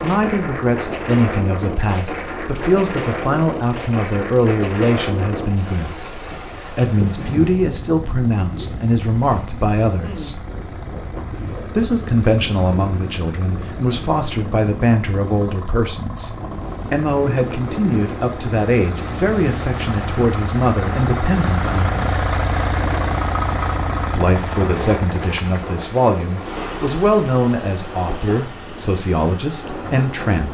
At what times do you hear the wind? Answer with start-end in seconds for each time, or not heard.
0.0-30.5.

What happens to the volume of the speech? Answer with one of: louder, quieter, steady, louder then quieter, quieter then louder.
steady.